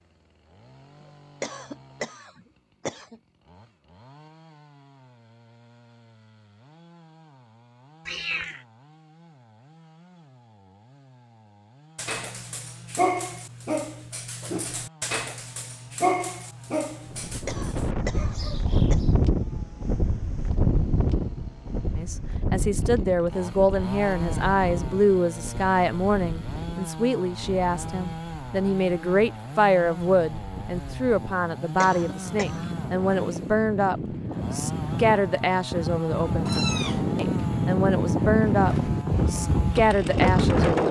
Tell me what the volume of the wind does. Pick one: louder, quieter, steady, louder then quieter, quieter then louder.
quieter then louder.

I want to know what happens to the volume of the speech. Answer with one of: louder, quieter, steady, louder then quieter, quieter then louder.
steady.